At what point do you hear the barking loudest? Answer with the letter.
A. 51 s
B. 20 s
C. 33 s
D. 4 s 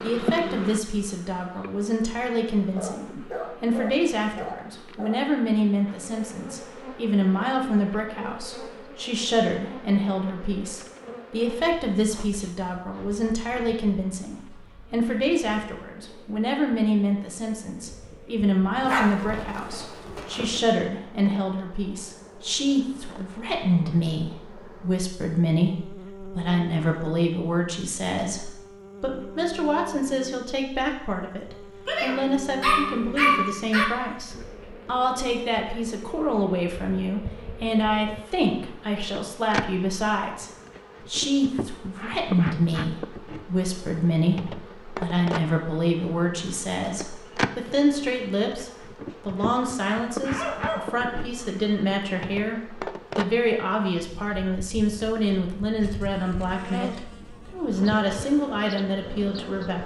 C.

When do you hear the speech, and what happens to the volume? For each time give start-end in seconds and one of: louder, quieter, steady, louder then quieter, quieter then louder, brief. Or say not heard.
0.0-59.8 steady.